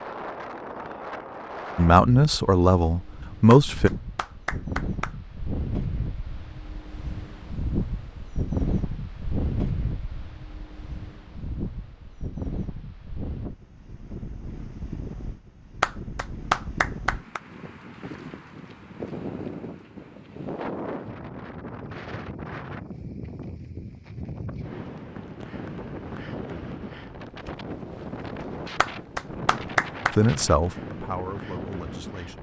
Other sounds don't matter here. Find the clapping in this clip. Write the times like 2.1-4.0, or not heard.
3.5-5.2, 15.8-17.4, 28.8-30.4.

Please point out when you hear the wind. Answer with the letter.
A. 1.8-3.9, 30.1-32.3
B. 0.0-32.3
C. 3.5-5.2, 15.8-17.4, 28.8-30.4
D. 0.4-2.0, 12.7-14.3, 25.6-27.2
B.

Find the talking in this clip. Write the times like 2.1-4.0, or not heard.
1.8-3.9, 30.1-32.3.